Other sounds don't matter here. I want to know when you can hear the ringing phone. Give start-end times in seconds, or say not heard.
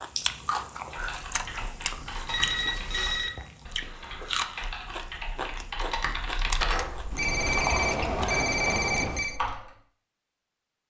2.2-3.3, 7.2-9.4.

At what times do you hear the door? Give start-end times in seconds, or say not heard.
6.5-9.3.